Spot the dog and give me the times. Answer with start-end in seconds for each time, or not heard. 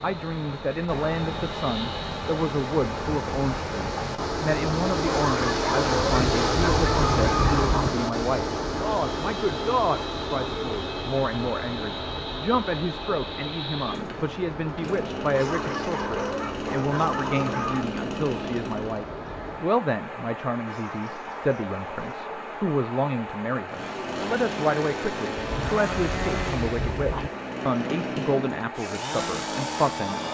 5.0-7.8, 15.3-17.9, 20.6-22.2.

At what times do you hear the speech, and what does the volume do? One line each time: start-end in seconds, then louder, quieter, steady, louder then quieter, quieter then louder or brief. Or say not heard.
0.0-30.2 steady.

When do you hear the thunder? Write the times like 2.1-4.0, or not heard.
6.1-7.9, 25.4-27.3.